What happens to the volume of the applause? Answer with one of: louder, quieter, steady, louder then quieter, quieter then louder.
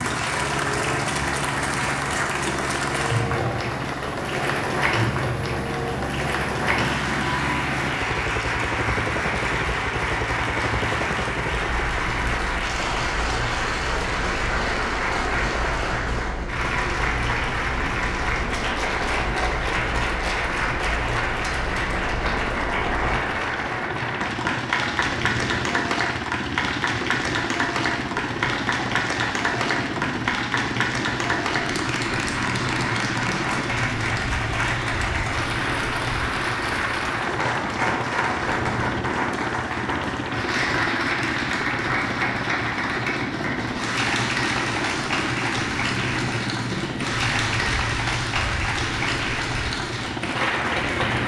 steady.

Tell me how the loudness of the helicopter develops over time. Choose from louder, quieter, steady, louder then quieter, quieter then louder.
steady.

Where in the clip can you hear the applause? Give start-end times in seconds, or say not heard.
0.0-51.2.